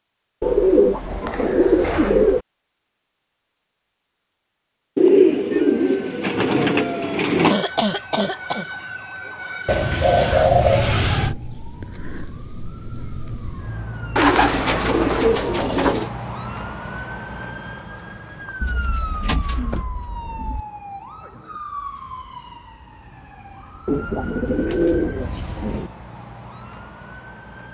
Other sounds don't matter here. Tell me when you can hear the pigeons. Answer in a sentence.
The pigeons can be heard from 0.4 to 2.4 s, from 5.0 to 7.5 s, from 9.7 to 11.3 s, from 14.2 to 16.1 s, from 18.6 to 20.6 s and from 23.9 to 25.9 s.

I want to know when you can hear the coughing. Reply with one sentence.
You can hear the coughing from 7.4 to 8.7 s.